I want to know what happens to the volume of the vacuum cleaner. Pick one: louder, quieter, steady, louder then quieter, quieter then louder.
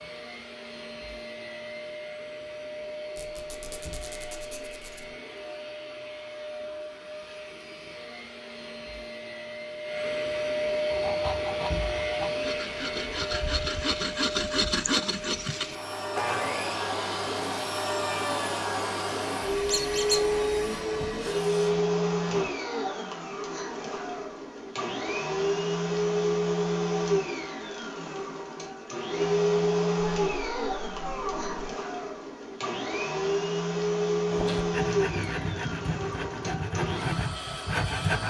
louder.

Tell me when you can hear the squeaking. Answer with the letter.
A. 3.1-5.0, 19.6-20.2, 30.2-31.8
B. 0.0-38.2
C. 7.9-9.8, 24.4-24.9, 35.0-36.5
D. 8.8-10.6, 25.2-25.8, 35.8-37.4
A.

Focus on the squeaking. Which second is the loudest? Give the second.
20 s.